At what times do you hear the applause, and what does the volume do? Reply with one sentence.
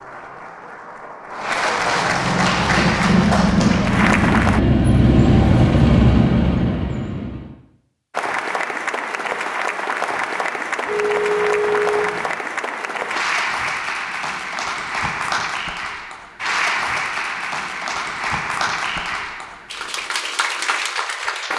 You can hear the applause from 0.0 to 4.6 s, getting louder; and from 8.1 to 21.5 s, at a steady volume.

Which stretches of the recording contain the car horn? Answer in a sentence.
The car horn can be heard from 10.8 to 12.3 s.